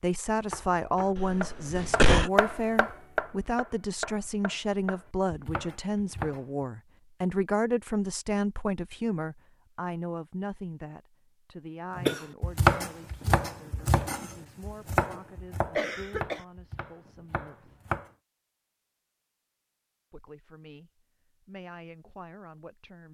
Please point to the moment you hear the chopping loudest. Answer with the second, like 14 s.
13 s.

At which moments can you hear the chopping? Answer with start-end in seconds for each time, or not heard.
0.5-6.7, 11.9-18.1.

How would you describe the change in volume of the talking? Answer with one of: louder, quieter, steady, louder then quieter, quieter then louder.
quieter.